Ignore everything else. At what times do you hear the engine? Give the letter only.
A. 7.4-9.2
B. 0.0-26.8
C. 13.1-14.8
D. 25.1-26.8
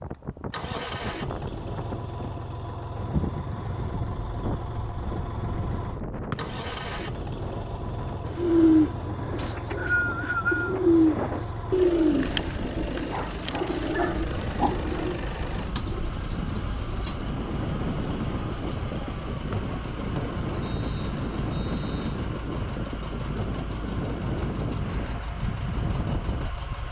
B.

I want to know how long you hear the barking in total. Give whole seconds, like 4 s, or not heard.
2 s.